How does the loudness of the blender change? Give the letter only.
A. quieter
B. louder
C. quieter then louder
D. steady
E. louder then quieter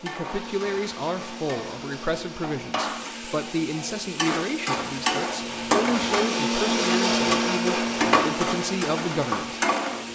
E.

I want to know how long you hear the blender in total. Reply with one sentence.
You can hear the blender for 10 seconds altogether.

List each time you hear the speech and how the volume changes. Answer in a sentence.
The speech can be heard from 0.0 to 9.6 s, at a steady volume.